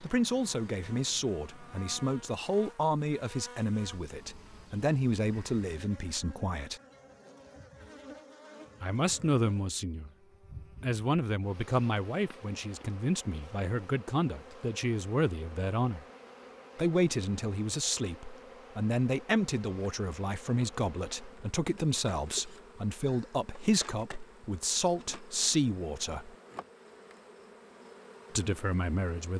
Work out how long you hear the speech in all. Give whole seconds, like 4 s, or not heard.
24 s.